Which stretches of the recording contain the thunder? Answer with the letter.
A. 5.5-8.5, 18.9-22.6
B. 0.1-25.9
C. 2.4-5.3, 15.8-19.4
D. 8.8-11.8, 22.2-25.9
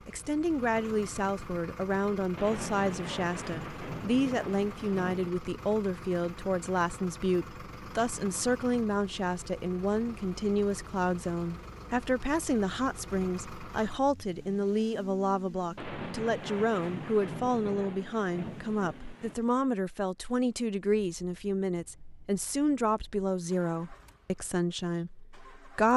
C.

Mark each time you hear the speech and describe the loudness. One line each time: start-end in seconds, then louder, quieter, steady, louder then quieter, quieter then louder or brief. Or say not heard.
0.1-25.9 steady.